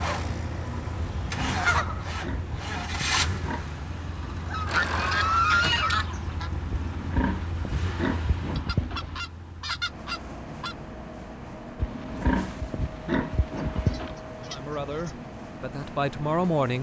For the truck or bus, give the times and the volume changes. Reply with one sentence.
You can hear the truck or bus from 0.0 to 16.7 s, getting quieter.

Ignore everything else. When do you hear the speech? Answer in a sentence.
The speech can be heard from 14.4 to 16.7 s.